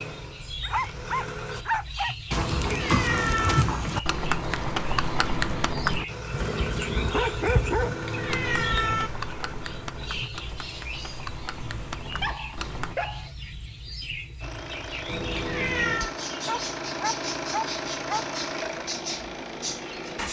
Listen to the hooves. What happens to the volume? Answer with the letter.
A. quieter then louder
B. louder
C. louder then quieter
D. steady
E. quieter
E.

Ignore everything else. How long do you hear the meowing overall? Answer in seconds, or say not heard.
4 s.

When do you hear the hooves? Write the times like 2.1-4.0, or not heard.
2.3-12.9.